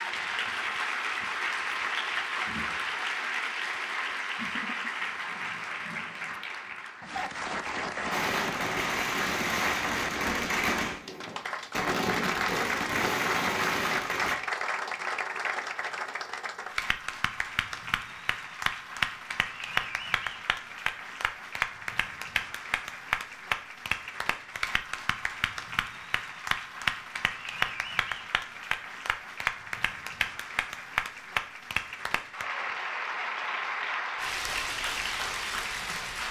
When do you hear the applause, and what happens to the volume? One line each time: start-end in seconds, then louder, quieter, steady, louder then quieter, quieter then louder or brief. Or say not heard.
0.0-36.2 steady.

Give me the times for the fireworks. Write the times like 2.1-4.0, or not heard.
8.1-14.3.